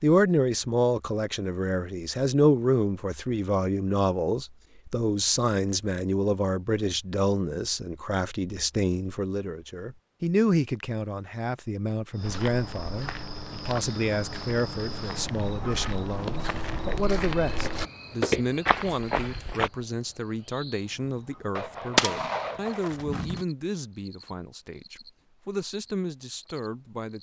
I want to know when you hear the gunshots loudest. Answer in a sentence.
The loudest moment of the gunshots is at 22 seconds.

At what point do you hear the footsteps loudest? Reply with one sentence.
The volume of the footsteps peaks at 18 seconds.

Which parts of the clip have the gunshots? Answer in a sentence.
The gunshots can be heard from 21.6 to 23.4 s.